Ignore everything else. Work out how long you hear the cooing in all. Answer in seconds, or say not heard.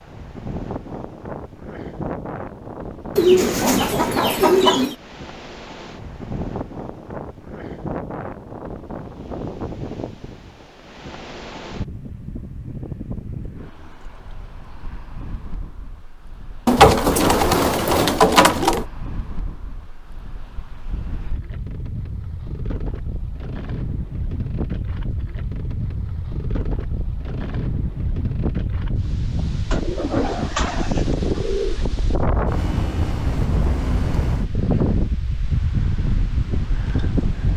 6 s.